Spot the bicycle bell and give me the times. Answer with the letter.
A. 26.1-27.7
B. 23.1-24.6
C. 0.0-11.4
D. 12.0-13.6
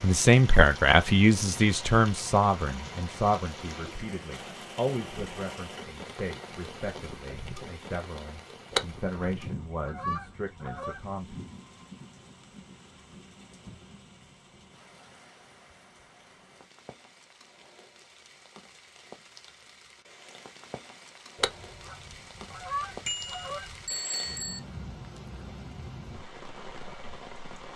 B.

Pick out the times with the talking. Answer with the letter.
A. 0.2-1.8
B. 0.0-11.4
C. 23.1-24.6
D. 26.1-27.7
B.